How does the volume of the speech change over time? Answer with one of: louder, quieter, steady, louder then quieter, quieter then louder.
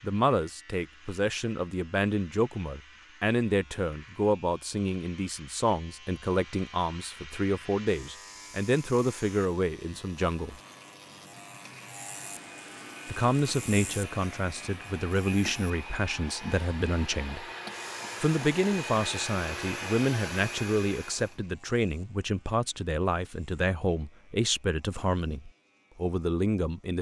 steady.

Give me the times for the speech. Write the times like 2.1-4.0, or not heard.
0.0-10.6, 13.1-17.4, 18.2-26.9.